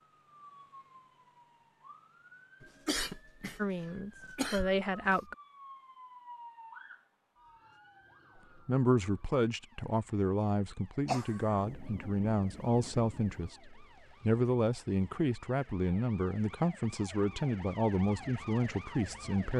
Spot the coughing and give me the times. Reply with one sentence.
You can hear the coughing from 2.6 to 5.2 s and from 11.1 to 11.8 s.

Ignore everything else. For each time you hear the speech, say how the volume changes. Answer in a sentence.
You can hear the speech briefly from 3.5 to 5.3 s; and from 8.7 to 19.5 s, at a steady volume.